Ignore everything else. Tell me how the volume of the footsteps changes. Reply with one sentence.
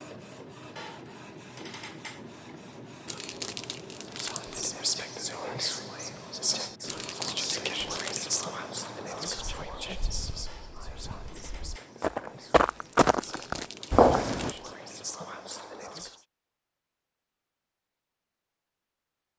The volume of the footsteps goes up.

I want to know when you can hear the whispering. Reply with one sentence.
The whispering can be heard from 4.2 to 16.2 s.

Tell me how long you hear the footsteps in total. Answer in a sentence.
The footsteps can be heard for 5 seconds in total.